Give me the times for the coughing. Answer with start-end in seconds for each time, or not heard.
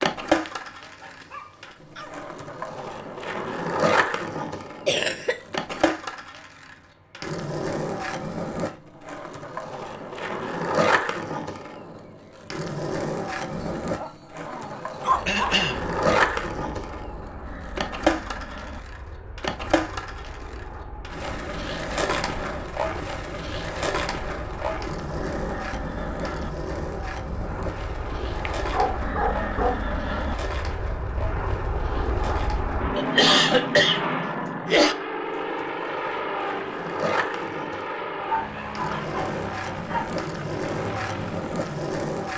4.8-6.0, 15.2-15.8, 33.0-35.0.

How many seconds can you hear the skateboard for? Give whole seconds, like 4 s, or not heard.
42 s.